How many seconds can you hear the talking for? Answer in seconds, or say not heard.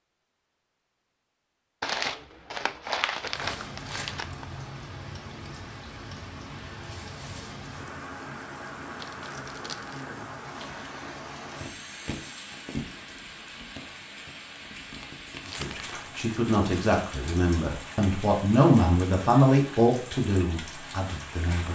6 s.